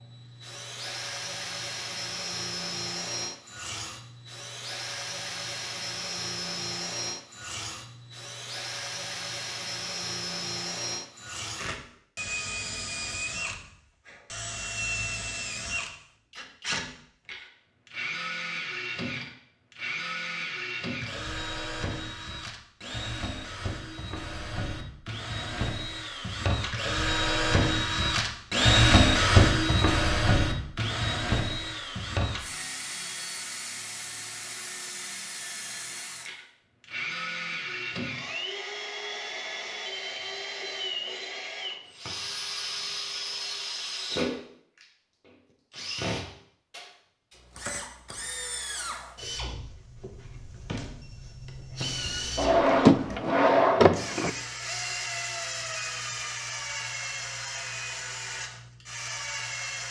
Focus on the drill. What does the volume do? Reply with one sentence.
The volume of the drill goes up, then down.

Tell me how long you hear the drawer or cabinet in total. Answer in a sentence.
The drawer or cabinet can be heard for 2 seconds in total.